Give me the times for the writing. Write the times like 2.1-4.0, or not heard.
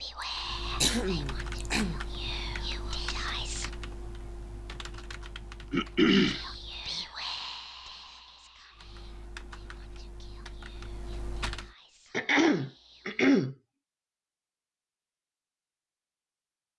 not heard.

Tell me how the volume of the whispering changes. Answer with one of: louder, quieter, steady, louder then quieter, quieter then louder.
quieter.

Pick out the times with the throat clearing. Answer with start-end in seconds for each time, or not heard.
0.8-2.0, 5.7-6.4, 12.1-13.6.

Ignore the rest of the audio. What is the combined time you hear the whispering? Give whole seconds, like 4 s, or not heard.
11 s.